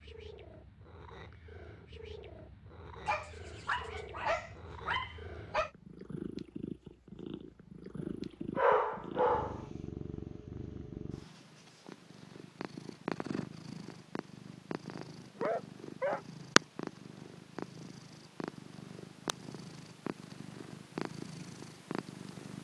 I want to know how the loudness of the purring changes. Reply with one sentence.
The volume of the purring goes up, then down.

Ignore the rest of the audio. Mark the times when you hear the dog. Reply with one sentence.
The dog can be heard from 3.0 to 5.7 s, from 8.6 to 9.6 s and from 15.3 to 16.2 s.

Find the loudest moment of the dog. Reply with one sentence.
The loudest moment of the dog is at 9 seconds.